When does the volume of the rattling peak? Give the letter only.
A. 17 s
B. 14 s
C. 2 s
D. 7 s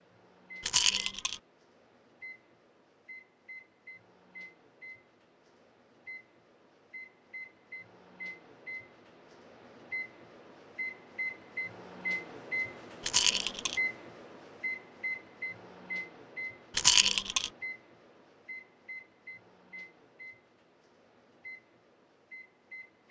A.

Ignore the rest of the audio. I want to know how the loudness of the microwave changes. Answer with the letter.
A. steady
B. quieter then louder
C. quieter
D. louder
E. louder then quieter
E.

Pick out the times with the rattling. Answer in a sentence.
The rattling can be heard from 0.6 to 1.4 s, from 13.0 to 13.8 s and from 16.8 to 17.5 s.